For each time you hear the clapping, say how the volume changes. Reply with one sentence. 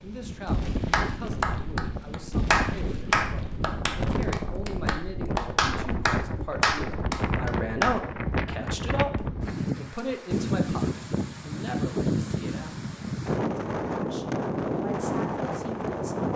You can hear the clapping from 0.9 to 8.0 s, getting quieter then louder.